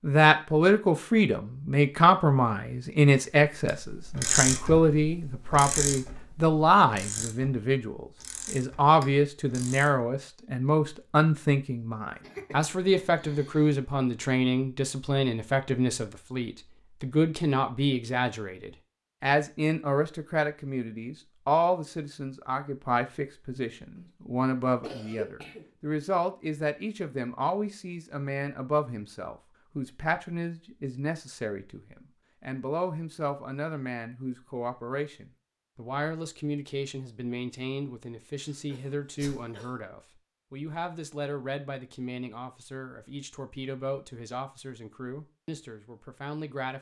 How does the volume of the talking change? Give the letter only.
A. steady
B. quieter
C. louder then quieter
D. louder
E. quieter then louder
B.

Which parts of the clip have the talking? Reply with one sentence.
You can hear the talking from 0.0 to 46.7 s.